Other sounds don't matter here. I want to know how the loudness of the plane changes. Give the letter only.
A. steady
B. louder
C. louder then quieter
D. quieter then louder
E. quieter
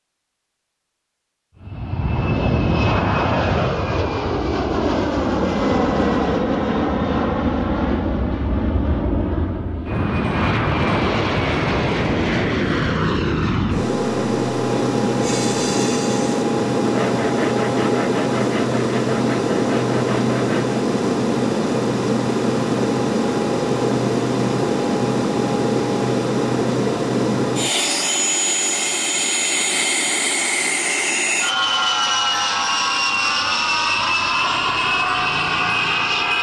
A.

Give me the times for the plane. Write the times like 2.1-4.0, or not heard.
1.6-36.3.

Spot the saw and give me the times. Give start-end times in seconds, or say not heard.
15.2-20.8.